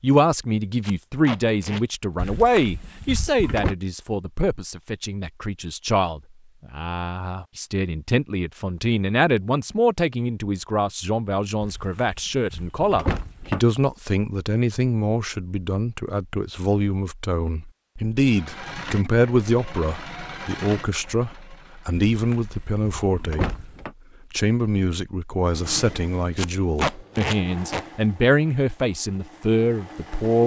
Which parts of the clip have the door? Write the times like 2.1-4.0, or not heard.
2.1-3.8, 11.6-13.6, 22.1-23.9.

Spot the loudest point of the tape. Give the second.
27 s.